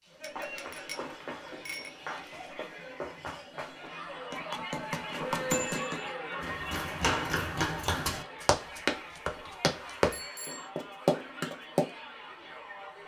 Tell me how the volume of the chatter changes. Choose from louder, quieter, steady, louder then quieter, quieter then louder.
louder then quieter.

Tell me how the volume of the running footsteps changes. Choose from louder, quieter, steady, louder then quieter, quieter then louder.
louder.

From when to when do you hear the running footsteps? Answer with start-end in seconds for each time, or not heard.
0.1-11.9.